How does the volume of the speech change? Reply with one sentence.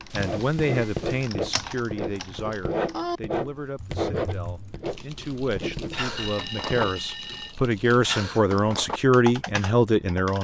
The volume of the speech goes down, then up.